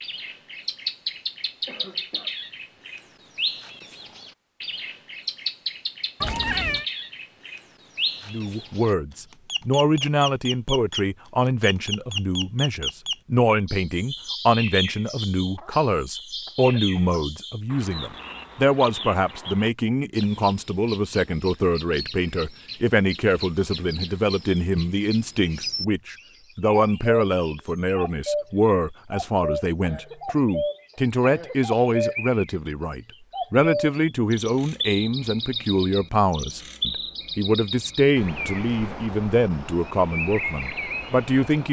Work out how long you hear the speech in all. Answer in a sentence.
You can hear the speech for 33 seconds altogether.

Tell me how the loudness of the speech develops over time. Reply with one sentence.
The loudness of the speech stays about the same.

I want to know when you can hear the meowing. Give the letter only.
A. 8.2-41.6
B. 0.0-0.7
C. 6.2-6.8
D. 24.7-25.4
C.